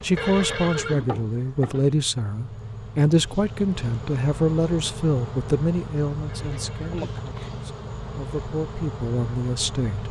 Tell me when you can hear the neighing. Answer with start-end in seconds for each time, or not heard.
0.1-1.1, 6.2-7.5.